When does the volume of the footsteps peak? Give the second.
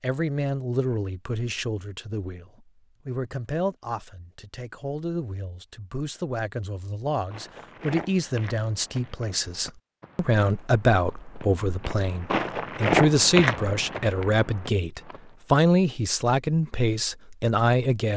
13 s.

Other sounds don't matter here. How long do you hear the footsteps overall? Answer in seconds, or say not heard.
8 s.